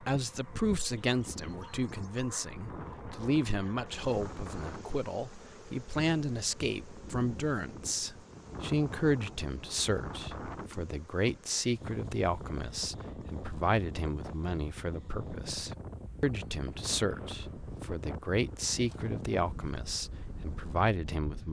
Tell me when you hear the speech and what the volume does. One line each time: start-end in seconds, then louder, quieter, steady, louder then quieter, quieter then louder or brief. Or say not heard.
0.0-21.4 steady.